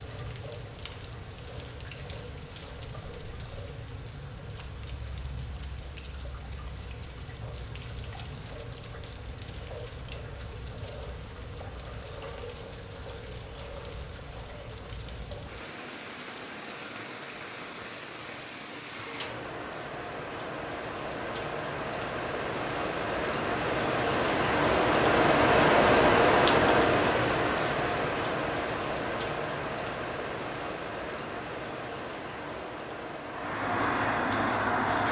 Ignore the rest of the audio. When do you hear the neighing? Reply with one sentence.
The neighing can't be heard in this clip.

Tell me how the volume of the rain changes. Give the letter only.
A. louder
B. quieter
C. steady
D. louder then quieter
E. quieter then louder
D.